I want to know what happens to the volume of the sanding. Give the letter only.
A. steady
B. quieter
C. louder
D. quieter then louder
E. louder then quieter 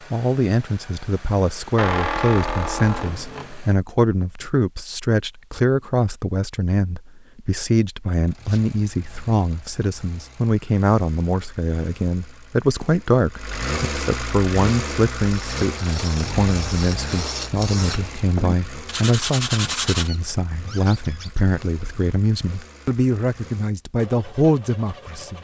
C.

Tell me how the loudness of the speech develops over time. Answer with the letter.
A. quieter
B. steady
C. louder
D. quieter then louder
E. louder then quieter
B.